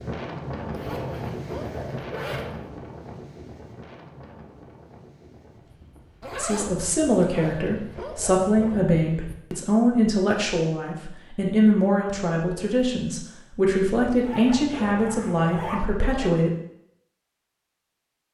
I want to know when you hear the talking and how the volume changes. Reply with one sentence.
You can hear the talking from 6.3 to 16.5 s, at a steady volume.